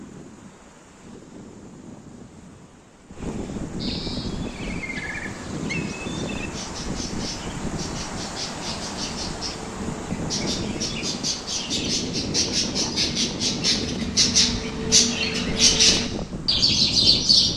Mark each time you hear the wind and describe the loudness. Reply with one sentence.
The wind can be heard from 0.0 to 17.5 s, getting louder.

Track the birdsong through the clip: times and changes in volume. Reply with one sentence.
You can hear the birdsong from 3.8 to 17.5 s, getting louder.